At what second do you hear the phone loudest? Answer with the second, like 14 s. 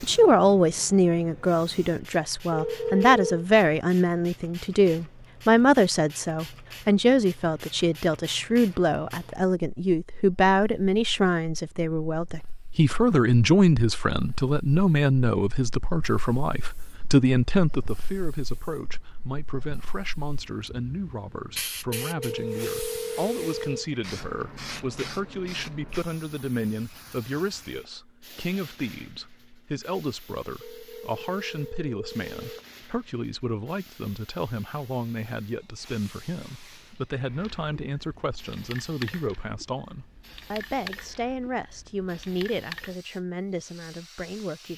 3 s.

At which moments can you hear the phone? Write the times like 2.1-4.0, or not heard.
2.5-3.5, 21.9-23.9, 30.6-32.9.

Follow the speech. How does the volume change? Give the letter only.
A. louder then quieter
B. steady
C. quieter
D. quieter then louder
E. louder
C.